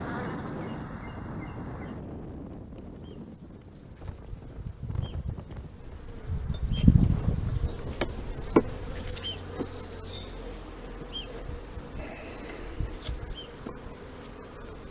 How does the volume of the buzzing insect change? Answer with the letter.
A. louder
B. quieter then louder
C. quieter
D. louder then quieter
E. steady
D.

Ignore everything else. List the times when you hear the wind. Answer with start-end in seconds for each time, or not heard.
0.0-9.2.